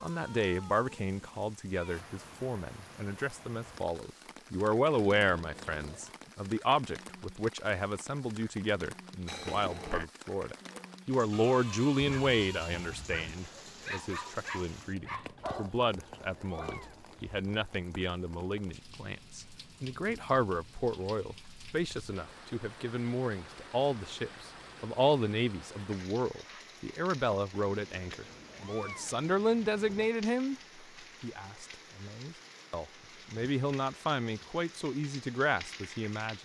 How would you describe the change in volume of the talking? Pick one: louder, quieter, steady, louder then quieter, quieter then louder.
steady.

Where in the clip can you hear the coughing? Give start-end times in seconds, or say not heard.
9.2-10.1.